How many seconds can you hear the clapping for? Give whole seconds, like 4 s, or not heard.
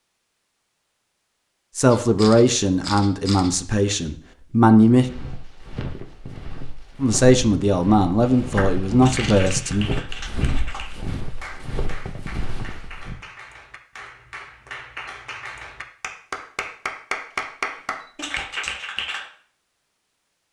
11 s.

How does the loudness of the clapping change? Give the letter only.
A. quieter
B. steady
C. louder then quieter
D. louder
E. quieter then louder
E.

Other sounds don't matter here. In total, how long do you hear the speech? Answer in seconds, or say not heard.
6 s.